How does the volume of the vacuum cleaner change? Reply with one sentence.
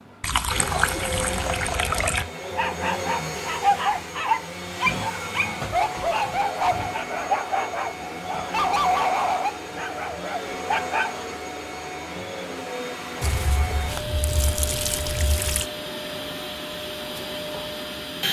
The loudness of the vacuum cleaner stays about the same.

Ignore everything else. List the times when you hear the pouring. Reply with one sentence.
The pouring can be heard from 0.2 to 2.2 s and from 13.2 to 15.7 s.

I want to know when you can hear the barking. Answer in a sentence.
The barking can be heard from 2.4 to 11.2 s.